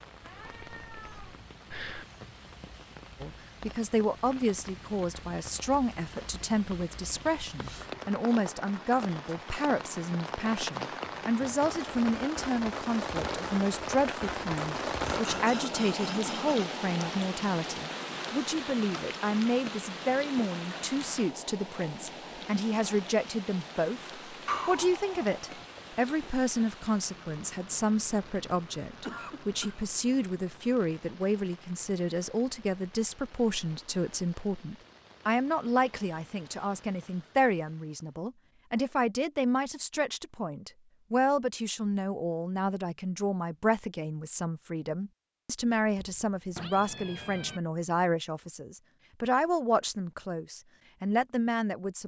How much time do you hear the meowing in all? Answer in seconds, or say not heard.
5 s.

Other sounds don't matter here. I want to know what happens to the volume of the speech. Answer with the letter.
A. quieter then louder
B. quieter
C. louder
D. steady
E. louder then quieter
D.